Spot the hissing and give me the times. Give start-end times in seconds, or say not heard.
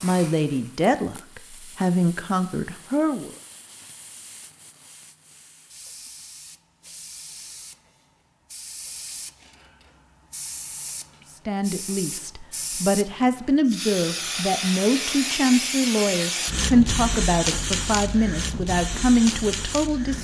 0.0-20.1.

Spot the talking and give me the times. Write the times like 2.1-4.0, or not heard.
0.0-3.3, 11.3-20.1.